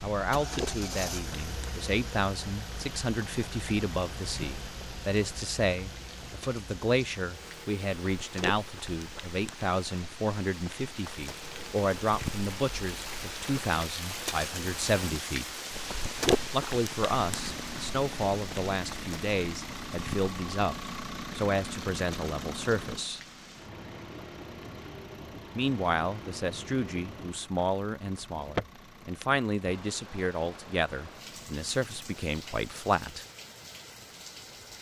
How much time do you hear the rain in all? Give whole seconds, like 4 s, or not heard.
35 s.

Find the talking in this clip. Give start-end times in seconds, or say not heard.
0.0-15.6, 16.5-23.2, 25.6-33.2.